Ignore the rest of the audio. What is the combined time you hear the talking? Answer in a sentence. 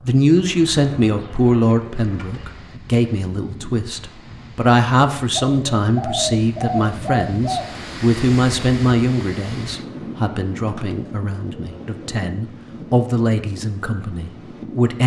You can hear the talking for 15 seconds altogether.